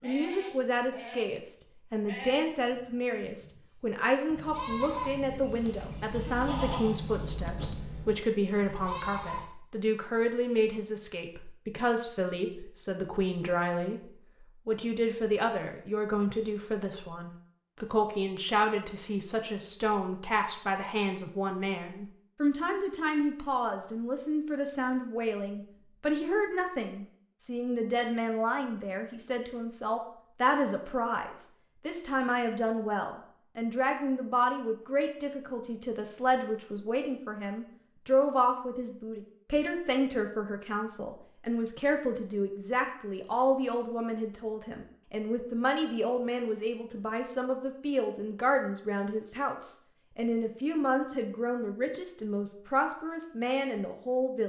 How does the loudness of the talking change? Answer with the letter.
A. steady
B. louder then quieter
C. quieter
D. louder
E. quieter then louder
A.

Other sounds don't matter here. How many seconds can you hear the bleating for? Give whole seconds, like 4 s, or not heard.
9 s.